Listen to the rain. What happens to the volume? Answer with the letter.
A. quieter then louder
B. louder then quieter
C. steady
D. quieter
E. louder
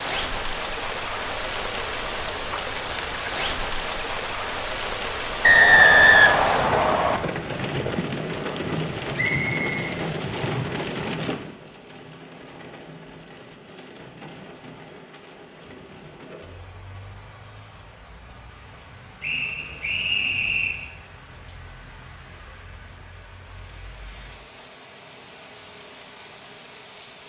D.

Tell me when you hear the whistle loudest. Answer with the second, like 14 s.
6 s.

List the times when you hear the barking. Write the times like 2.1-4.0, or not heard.
not heard.